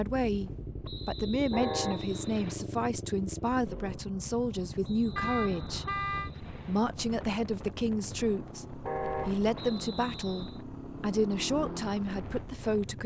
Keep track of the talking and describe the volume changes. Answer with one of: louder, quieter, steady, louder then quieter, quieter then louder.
steady.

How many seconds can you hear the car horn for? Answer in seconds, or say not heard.
2 s.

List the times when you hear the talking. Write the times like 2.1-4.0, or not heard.
0.0-13.0.